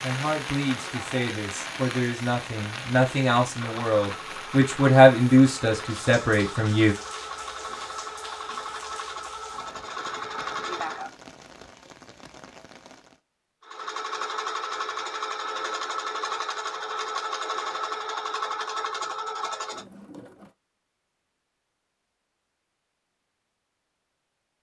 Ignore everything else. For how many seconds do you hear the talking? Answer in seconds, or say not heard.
7 s.